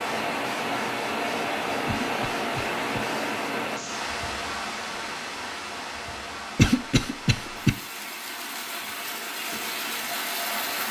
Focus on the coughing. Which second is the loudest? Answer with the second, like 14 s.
7 s.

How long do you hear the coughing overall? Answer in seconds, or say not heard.
2 s.